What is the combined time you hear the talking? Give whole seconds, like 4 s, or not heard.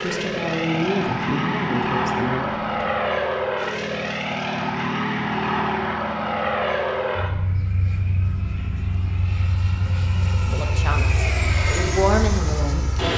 5 s.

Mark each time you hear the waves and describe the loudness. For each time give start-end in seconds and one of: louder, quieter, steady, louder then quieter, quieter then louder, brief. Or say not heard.
not heard.